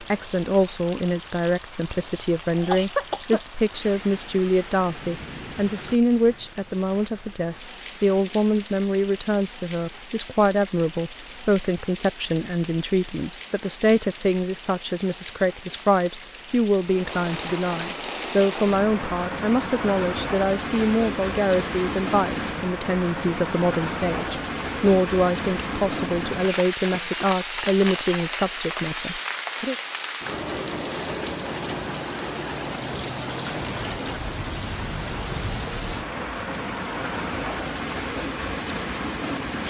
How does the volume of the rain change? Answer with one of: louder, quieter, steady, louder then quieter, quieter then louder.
louder.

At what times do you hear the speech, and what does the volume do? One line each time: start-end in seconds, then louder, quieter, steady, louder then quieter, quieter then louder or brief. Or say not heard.
0.0-29.8 steady.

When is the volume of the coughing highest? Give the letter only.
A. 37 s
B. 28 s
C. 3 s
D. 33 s
C.